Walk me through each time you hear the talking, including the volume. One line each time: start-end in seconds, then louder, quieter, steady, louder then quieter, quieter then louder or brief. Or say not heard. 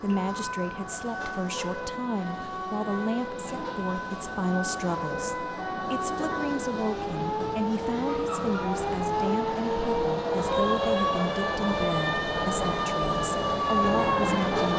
0.0-14.6 steady.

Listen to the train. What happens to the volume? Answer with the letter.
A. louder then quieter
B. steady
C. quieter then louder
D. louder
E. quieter
D.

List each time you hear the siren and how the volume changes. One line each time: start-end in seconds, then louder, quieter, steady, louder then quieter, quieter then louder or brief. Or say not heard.
0.0-14.7 louder.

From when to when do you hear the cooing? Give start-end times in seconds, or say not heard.
not heard.